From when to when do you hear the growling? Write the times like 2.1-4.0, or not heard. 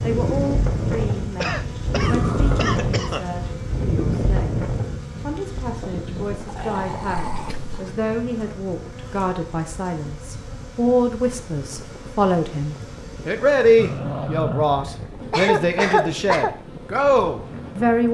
2.0-2.9, 6.5-7.9, 13.8-15.3.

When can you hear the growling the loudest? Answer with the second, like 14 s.
14 s.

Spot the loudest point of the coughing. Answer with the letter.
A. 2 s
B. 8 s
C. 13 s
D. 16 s
D.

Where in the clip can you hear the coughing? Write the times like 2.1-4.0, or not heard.
1.4-3.2, 7.3-7.8, 15.3-16.5.